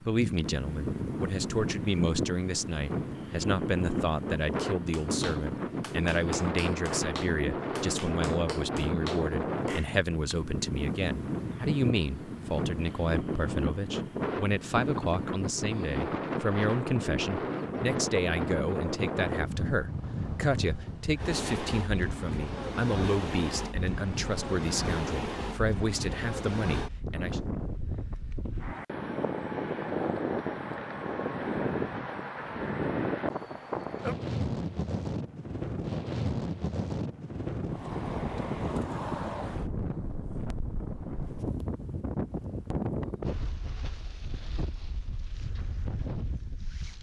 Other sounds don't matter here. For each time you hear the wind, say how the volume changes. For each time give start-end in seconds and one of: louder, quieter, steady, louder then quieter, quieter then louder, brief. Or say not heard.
0.0-46.9 steady.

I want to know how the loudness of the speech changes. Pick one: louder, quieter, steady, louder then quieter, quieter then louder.
steady.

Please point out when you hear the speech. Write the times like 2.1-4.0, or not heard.
0.0-27.4.